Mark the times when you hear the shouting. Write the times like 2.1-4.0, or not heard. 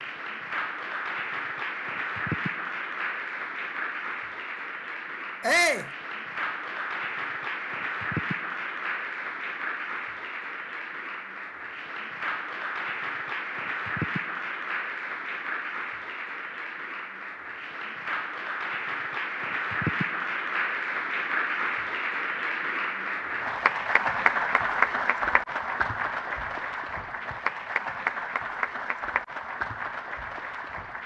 5.4-5.9.